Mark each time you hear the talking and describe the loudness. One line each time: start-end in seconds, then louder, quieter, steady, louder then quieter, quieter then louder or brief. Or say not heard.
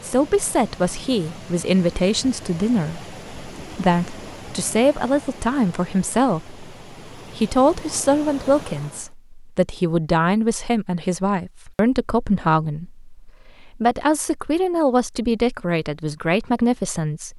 0.0-17.3 steady.